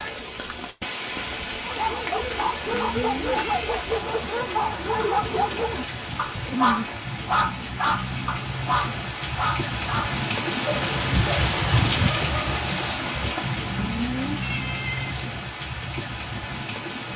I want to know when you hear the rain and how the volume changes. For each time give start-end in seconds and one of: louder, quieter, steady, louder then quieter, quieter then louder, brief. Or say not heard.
0.0-17.1 louder then quieter.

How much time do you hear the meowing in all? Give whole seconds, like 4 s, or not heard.
2 s.